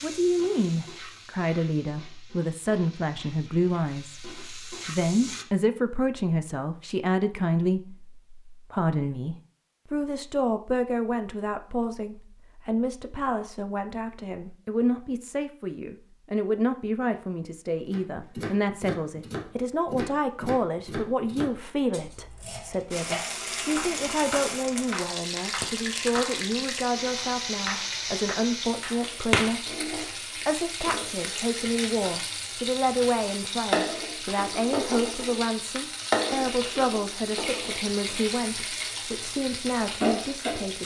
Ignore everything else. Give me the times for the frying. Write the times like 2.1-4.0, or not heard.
0.0-5.5, 22.9-40.8.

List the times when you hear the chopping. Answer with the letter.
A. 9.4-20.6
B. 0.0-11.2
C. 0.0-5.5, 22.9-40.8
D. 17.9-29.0
D.